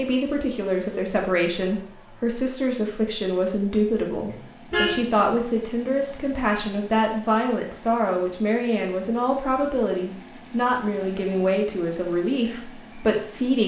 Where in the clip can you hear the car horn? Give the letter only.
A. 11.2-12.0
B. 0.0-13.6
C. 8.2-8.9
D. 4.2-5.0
D.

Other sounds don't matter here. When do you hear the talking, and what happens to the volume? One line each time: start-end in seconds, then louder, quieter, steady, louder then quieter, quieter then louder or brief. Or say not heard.
0.0-13.6 steady.